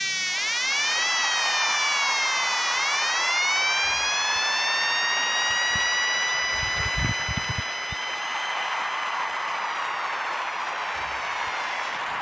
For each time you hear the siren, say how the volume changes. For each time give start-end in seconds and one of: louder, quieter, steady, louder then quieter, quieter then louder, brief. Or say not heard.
0.0-12.1 quieter.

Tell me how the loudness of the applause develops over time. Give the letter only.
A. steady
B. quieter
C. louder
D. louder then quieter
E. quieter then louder
A.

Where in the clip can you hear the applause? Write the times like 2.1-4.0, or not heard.
0.0-12.1.